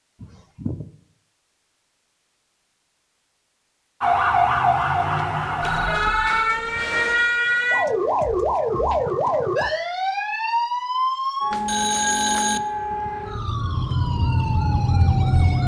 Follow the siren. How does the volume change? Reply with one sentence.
The volume of the siren stays about the same.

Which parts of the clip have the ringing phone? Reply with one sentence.
The ringing phone can be heard from 0.2 to 0.8 s, from 5.6 to 6.9 s and from 11.5 to 12.6 s.